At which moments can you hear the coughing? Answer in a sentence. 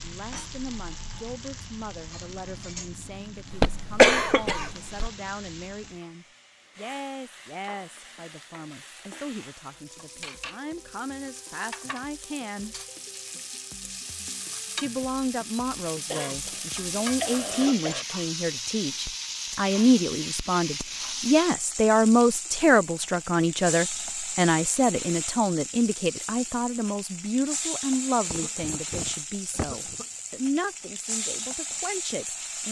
You can hear the coughing from 3.5 to 5.1 s, from 16.1 to 18.1 s and from 28.2 to 30.1 s.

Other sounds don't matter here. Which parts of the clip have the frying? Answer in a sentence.
The frying can be heard from 0.0 to 32.6 s.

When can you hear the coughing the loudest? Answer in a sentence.
The volume of the coughing peaks at 4 seconds.